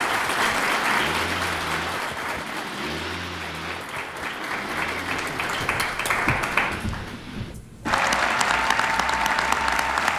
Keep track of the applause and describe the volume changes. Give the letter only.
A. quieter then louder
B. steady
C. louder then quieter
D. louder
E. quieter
A.